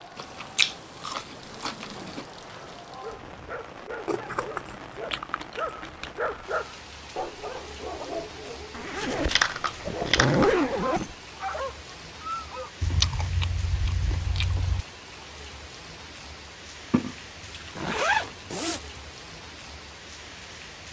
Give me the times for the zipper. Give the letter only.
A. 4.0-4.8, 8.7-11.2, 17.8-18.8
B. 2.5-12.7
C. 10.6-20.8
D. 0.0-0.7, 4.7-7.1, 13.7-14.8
A.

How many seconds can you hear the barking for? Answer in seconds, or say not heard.
10 s.